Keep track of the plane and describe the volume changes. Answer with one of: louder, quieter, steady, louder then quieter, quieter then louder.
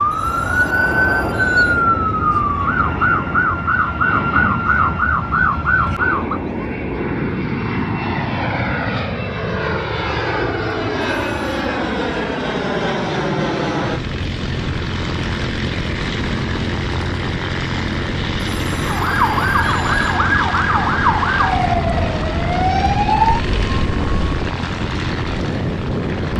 steady.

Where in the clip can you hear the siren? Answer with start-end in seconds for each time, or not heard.
0.0-6.4, 18.8-24.4.